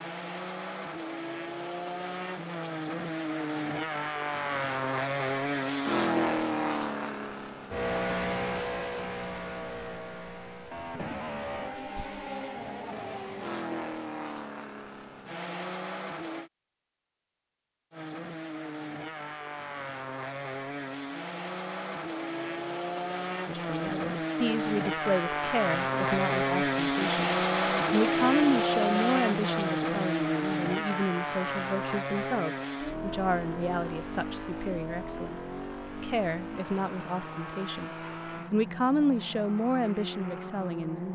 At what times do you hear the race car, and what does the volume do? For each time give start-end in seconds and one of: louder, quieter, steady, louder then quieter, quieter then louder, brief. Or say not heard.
0.0-16.5 louder then quieter
17.9-41.1 louder then quieter.